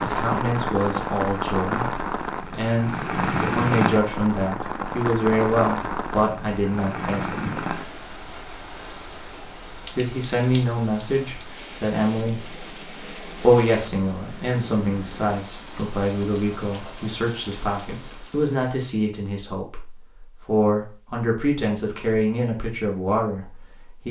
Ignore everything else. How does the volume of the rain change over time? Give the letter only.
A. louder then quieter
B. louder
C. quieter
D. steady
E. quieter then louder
C.